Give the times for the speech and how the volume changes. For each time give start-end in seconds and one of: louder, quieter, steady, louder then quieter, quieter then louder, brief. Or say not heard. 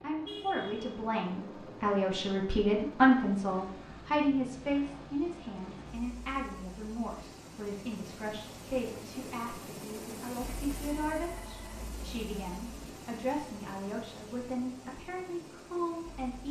0.0-16.4 quieter.